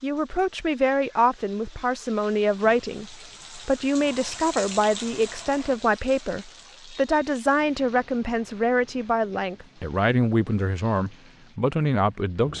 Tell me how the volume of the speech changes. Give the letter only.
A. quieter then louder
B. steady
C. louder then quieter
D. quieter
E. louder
B.